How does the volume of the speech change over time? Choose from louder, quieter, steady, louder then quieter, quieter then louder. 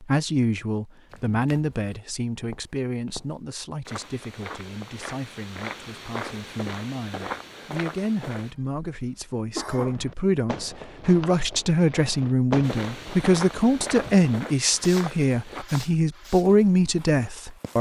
quieter then louder.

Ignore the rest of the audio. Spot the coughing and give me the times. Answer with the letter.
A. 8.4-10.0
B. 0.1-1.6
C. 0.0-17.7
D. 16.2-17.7
A.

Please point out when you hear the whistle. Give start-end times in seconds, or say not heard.
not heard.